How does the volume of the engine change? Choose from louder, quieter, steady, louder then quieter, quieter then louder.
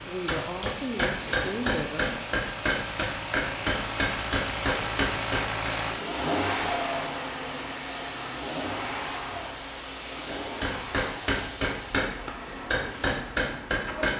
louder then quieter.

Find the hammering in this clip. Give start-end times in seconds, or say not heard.
0.0-5.8, 10.2-14.1.